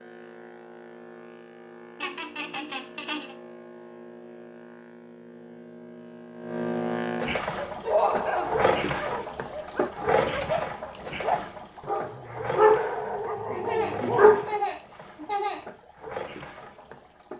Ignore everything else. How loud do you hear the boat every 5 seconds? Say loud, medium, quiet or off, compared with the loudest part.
quiet, loud, loud, medium.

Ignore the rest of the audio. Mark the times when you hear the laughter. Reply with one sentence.
You can hear the laughter from 2.0 to 3.3 s, from 7.8 to 8.8 s and from 12.9 to 15.6 s.